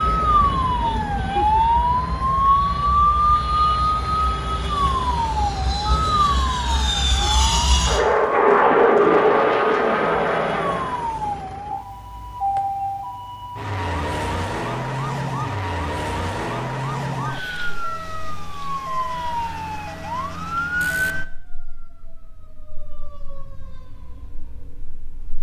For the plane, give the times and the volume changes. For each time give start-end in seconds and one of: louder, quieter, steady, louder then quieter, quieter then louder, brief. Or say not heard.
0.0-11.1 louder.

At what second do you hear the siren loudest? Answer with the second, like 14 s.
3 s.